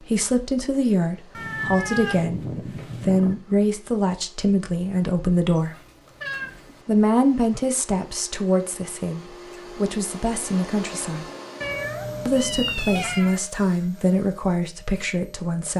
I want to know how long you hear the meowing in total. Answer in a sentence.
You can hear the meowing for 5 seconds altogether.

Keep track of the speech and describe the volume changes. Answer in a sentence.
The loudness of the speech stays about the same.